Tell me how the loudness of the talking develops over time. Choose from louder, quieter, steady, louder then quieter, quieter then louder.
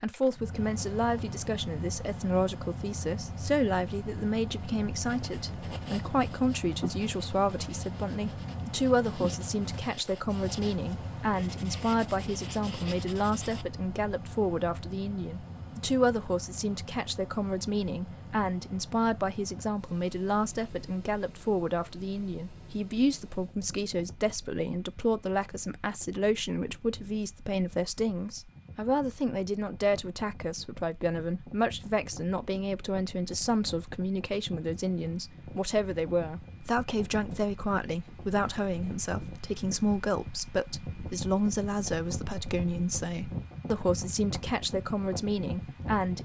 steady.